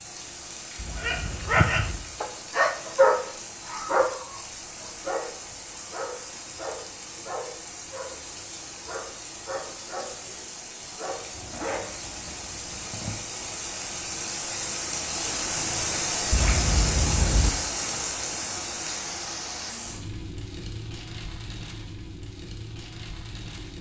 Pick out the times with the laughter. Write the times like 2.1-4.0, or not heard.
not heard.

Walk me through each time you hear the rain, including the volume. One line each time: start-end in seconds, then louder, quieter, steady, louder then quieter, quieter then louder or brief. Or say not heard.
0.0-23.7 louder then quieter.